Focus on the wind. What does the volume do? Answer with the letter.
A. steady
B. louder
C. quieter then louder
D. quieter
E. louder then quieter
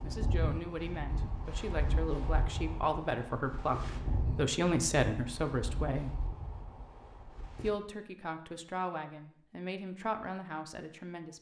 D.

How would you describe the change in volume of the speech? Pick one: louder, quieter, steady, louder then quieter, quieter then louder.
louder then quieter.